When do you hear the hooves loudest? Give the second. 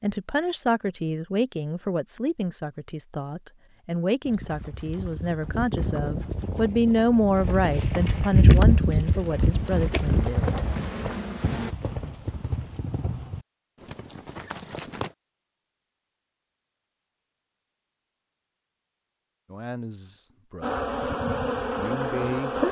9 s.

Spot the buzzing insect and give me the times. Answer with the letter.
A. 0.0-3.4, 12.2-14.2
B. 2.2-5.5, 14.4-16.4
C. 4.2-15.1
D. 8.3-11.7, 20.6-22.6
D.